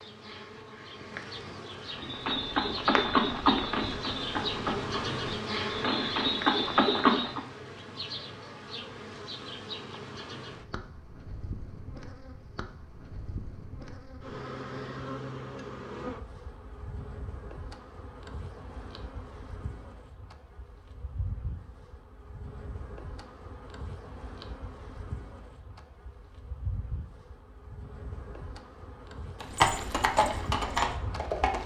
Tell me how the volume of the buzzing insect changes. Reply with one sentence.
The loudness of the buzzing insect goes down.